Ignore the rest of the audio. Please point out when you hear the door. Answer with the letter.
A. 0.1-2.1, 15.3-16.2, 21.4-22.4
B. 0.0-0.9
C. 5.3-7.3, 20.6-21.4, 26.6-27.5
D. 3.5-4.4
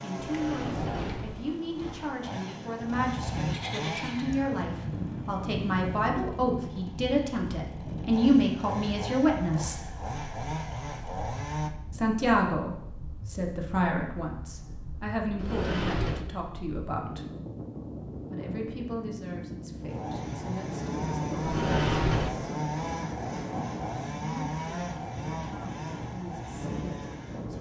A.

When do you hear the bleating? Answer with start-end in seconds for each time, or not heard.
3.5-4.4.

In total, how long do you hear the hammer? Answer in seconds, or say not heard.
not heard.